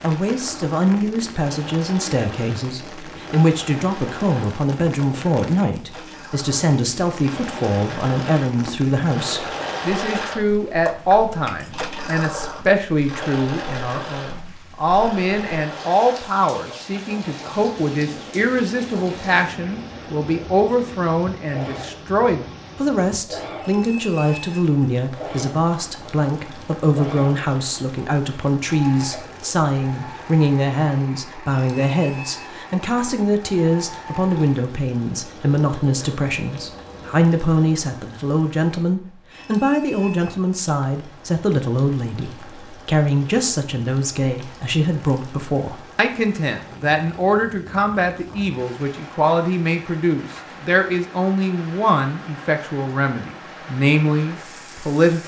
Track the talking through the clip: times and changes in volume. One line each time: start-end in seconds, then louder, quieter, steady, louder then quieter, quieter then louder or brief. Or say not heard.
0.0-55.2 steady.